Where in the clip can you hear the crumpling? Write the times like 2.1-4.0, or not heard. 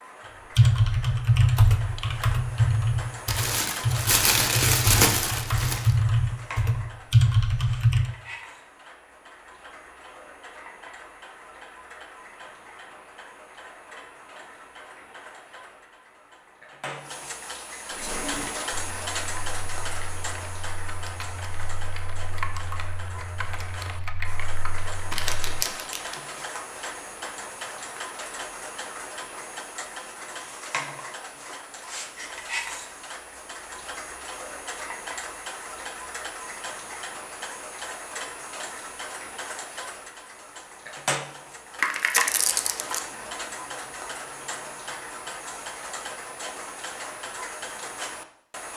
3.2-5.9, 25.1-26.1, 41.8-43.0.